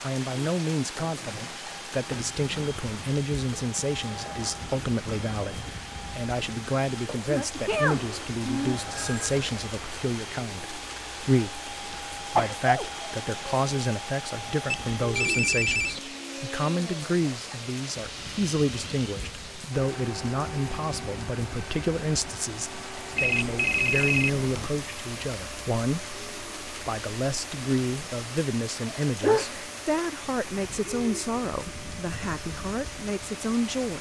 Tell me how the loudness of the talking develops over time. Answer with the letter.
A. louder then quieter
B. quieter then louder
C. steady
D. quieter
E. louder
C.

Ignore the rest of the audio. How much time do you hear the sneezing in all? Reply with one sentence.
The sneezing can be heard for 4 seconds in total.